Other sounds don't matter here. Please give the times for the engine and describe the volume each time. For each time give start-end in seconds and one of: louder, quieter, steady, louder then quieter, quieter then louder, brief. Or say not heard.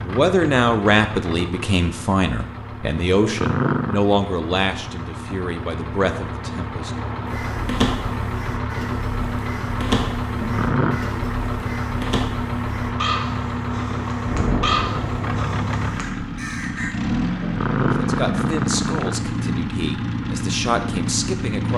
0.0-21.7 louder.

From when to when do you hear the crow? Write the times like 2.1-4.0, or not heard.
7.2-16.9.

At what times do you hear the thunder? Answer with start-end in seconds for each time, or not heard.
14.2-15.6.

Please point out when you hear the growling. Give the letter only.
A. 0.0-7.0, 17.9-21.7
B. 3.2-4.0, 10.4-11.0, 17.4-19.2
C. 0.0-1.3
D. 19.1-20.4
B.